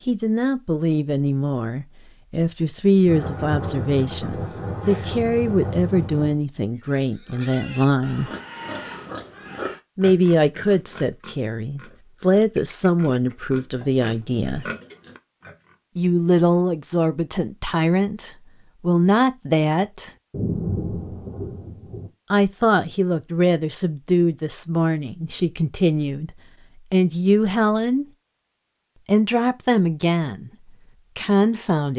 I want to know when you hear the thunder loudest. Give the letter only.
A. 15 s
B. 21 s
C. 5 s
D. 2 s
B.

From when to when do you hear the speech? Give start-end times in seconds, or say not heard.
0.1-8.3, 9.9-14.7, 15.9-20.1, 22.3-28.1, 29.1-31.9.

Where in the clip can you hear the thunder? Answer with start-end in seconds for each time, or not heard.
3.0-6.3, 20.3-22.1.